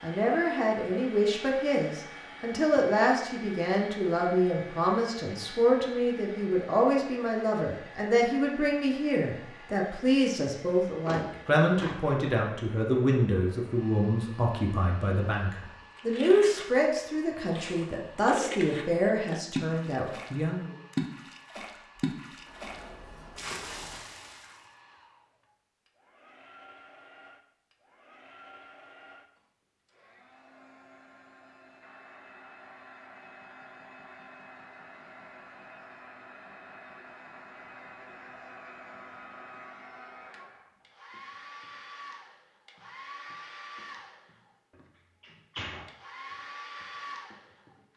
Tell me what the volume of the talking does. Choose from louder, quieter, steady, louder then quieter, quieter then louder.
steady.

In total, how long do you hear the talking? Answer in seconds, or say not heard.
21 s.